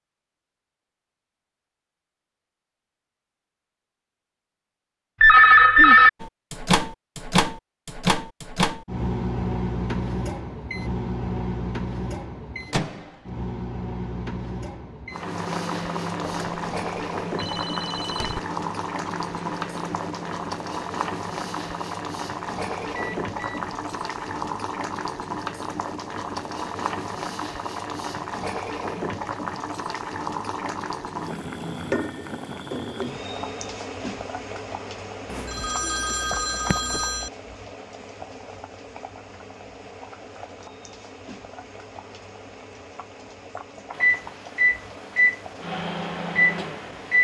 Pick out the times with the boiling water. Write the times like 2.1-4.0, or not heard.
15.1-47.1.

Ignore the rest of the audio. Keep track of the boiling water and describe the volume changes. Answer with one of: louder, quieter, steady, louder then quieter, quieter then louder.
quieter.